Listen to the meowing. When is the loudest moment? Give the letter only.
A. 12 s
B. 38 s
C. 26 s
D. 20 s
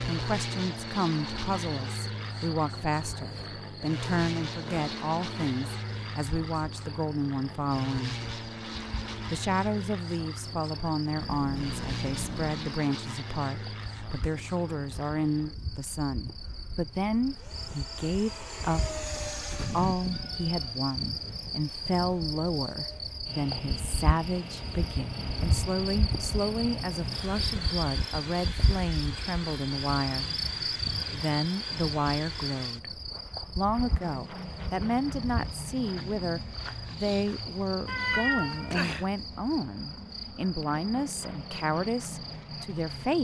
B.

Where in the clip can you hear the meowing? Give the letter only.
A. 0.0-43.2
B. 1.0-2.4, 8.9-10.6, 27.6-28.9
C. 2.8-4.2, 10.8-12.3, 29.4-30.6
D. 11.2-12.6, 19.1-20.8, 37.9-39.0
D.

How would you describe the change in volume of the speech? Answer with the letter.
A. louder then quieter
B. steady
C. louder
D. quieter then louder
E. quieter
B.